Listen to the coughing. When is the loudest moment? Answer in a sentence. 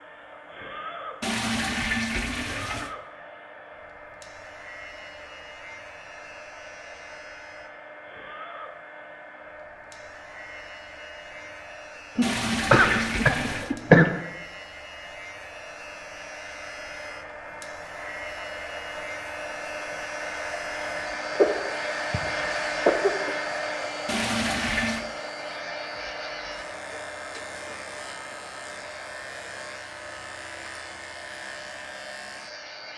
The loudest moment of the coughing is at 14 seconds.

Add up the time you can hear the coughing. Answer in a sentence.
The coughing can be heard for 4 seconds in total.